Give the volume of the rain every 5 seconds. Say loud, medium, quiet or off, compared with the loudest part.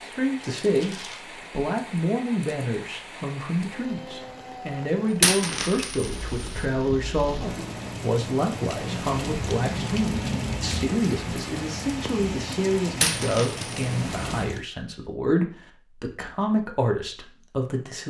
medium, loud, loud, off.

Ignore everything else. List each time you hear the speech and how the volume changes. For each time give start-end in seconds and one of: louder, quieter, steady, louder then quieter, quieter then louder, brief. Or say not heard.
0.0-18.0 steady.